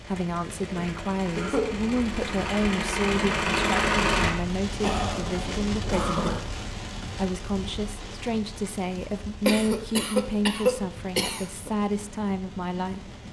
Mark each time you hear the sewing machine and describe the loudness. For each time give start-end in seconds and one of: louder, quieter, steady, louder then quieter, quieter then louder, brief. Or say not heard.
0.0-4.3 louder.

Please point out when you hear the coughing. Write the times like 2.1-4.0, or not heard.
0.8-1.6, 4.8-6.4, 9.4-11.7.